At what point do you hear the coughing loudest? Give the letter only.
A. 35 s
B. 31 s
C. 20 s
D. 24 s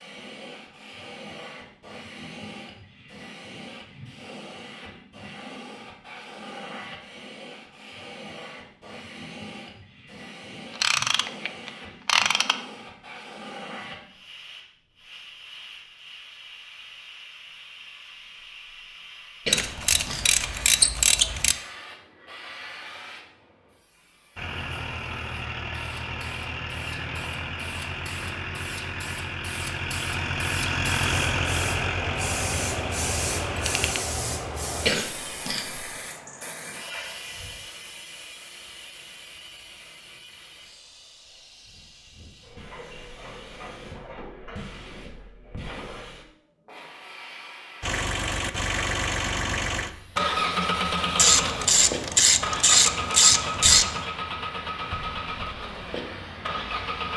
A.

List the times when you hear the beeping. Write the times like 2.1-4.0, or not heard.
not heard.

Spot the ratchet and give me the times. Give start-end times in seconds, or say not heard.
10.8-12.6, 19.5-21.6, 33.5-34.0, 51.1-54.0.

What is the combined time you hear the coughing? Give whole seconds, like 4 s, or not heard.
2 s.